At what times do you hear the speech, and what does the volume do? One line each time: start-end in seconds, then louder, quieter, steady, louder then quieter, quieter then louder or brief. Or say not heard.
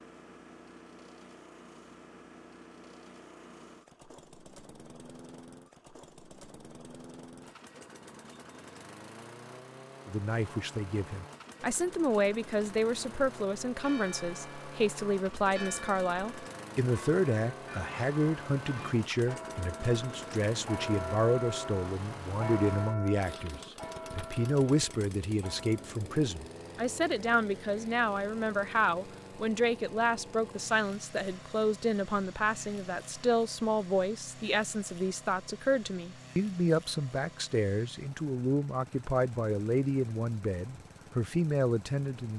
10.1-42.3 steady.